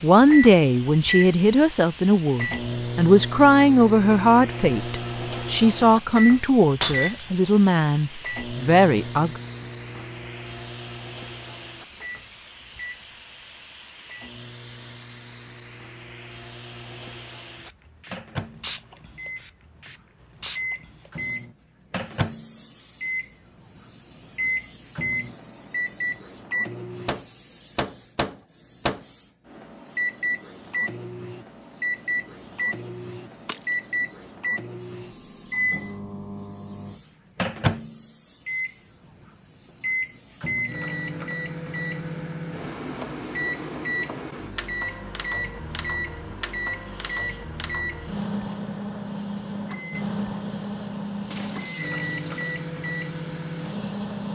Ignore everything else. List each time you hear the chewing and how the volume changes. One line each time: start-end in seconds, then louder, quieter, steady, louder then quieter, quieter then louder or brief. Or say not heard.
not heard.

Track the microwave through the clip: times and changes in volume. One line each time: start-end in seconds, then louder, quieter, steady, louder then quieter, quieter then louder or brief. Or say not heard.
0.1-54.2 quieter then louder.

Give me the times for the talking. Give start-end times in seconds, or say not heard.
0.0-9.4.